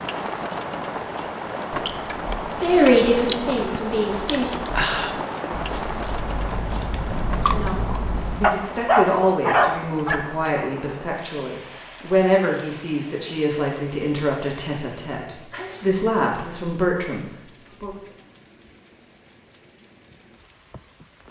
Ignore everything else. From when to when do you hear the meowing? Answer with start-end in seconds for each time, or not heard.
not heard.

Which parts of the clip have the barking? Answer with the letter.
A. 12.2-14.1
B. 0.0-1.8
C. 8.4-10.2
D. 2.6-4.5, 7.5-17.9
C.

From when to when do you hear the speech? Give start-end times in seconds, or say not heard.
2.6-4.5, 7.5-17.9.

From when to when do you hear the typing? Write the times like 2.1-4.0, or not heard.
not heard.